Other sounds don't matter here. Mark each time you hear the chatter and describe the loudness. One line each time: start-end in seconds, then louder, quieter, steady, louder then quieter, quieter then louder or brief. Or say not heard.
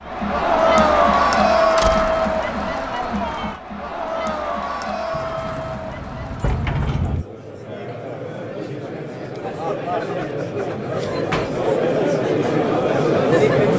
0.0-13.7 quieter then louder.